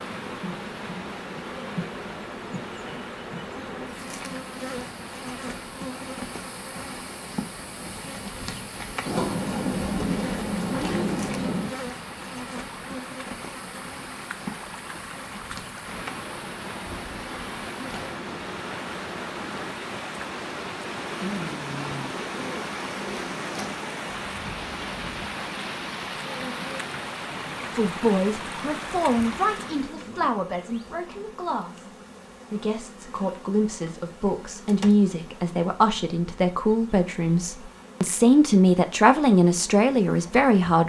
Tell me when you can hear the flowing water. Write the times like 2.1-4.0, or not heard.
0.0-30.1.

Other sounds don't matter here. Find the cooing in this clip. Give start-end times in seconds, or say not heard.
9.1-11.8, 21.1-23.8.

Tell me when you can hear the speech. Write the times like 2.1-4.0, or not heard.
27.8-31.9, 32.5-40.8.